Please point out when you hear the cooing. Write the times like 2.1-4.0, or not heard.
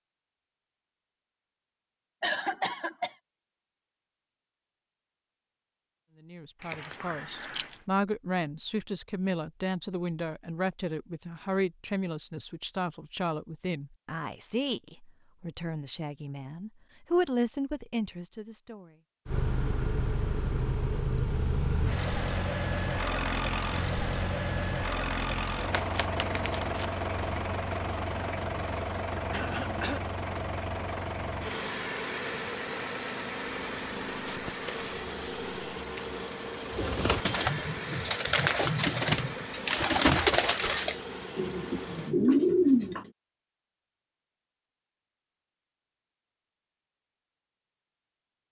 36.7-43.0.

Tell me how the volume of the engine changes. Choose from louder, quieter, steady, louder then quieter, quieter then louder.
quieter.